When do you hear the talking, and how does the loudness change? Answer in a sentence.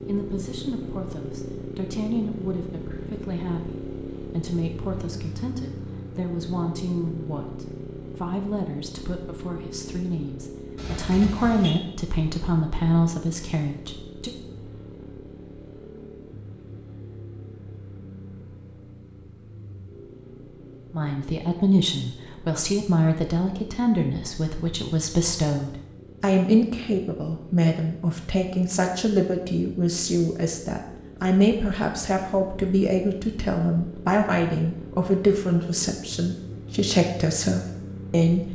You can hear the talking from 0.1 to 14.3 s, getting louder; and from 20.9 to 38.5 s, at a steady volume.